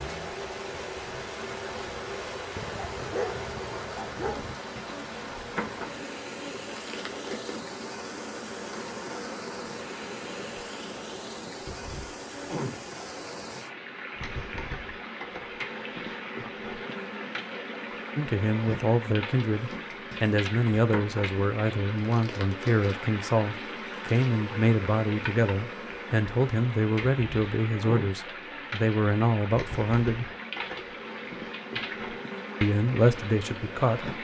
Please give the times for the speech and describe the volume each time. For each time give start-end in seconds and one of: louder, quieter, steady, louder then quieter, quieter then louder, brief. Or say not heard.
18.1-30.2 steady
32.6-34.1 brief.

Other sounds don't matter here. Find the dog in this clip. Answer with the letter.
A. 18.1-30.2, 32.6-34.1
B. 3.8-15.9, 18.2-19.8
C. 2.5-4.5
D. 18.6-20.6
C.